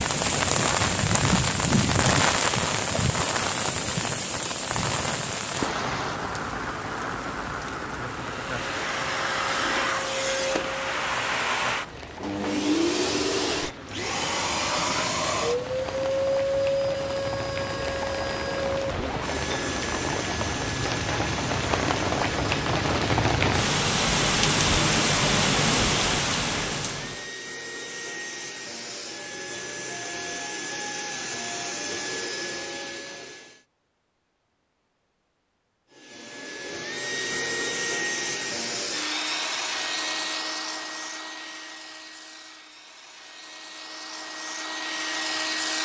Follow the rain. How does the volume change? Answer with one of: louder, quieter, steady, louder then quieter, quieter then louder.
quieter then louder.